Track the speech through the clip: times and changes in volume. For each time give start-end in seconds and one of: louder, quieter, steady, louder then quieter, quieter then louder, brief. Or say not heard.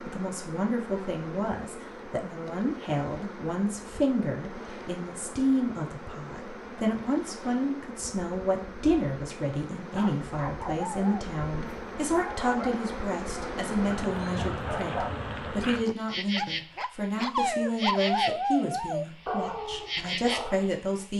0.0-21.1 steady.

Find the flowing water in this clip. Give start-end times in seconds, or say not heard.
not heard.